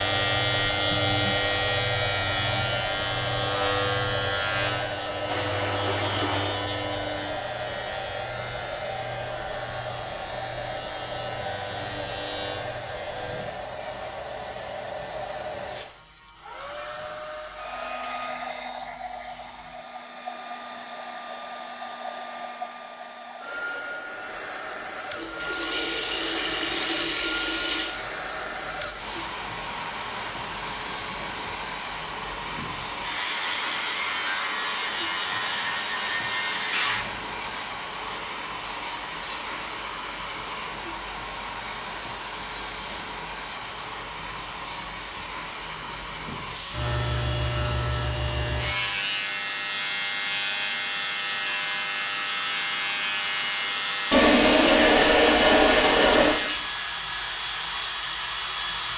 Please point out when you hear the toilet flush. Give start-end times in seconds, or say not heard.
5.2-6.6, 25.1-27.9, 54.1-56.4.